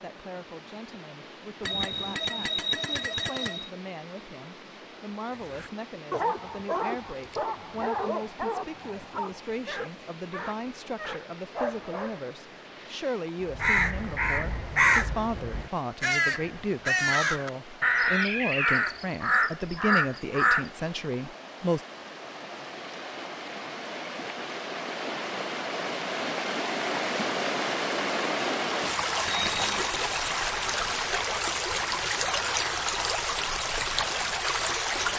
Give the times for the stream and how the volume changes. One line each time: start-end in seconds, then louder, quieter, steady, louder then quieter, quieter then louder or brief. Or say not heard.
0.0-35.1 louder.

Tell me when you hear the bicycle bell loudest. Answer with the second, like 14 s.
3 s.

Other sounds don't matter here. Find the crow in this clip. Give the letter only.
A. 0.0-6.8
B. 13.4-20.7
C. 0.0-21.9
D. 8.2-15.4
B.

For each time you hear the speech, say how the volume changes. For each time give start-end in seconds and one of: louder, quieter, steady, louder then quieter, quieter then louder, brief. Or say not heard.
0.0-21.9 louder.